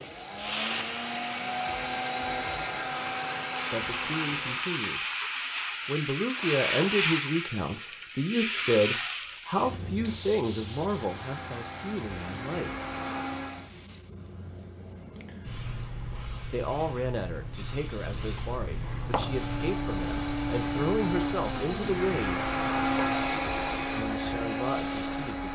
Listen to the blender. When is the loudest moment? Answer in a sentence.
The loudest moment of the blender is at 23 seconds.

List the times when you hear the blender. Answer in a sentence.
The blender can be heard from 0.0 to 4.8 s, from 10.6 to 13.7 s and from 18.9 to 25.4 s.